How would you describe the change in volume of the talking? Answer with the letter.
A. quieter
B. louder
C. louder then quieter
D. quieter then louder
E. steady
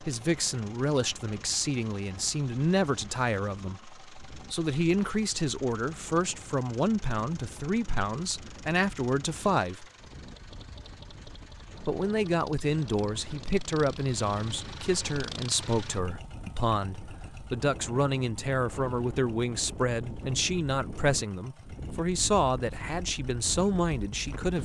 E.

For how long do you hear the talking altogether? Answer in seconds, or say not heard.
23 s.